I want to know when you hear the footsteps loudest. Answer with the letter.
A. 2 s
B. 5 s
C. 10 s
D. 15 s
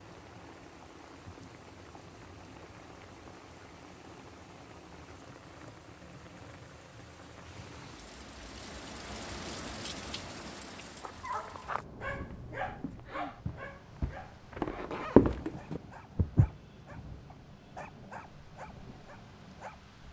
D.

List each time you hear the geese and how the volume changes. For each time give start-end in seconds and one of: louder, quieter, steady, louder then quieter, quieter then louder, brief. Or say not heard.
not heard.